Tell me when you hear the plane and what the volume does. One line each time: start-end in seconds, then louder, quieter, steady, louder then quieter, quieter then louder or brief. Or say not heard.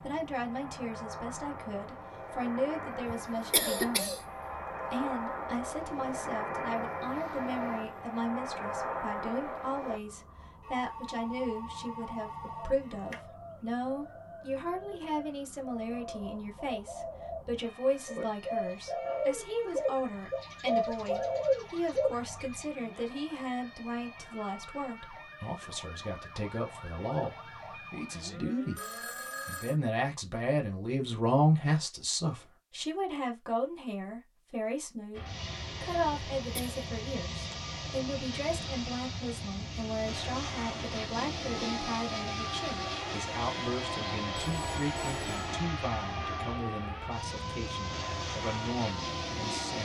0.0-10.0 louder
35.1-49.8 steady.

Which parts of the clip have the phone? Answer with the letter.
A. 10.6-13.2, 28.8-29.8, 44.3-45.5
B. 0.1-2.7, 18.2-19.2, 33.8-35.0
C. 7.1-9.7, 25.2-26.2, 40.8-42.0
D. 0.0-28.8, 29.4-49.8
A.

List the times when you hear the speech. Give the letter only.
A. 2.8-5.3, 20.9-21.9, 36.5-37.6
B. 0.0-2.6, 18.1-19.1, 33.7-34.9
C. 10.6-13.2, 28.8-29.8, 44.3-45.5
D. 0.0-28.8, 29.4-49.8
D.